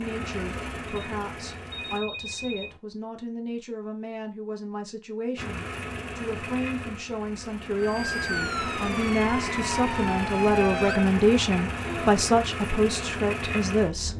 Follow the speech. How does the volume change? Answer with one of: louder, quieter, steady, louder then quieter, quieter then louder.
louder.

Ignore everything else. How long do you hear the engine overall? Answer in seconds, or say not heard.
11 s.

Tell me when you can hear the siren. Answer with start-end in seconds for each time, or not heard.
7.8-12.2.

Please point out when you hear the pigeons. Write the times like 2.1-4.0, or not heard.
not heard.